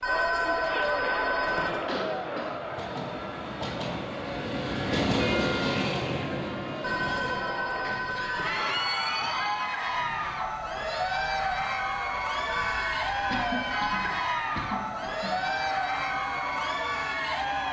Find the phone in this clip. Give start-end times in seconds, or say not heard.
0.0-1.8, 6.8-8.6, 12.4-14.2.